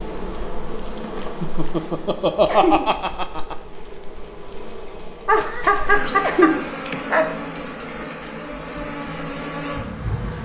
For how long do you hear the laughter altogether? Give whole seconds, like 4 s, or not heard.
4 s.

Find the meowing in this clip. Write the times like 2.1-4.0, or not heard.
2.5-2.9, 6.2-6.7.